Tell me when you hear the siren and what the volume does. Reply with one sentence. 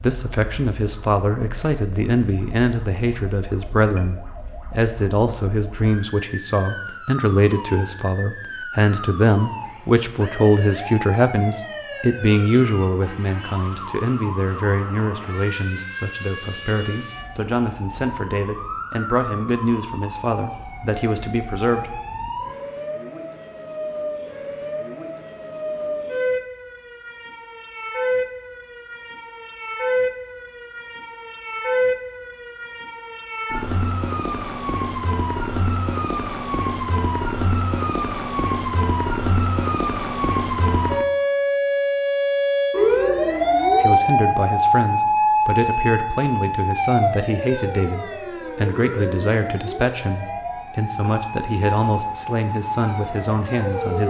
You can hear the siren from 0.0 to 54.0 s, getting louder.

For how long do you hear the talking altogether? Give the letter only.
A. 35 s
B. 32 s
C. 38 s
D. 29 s
B.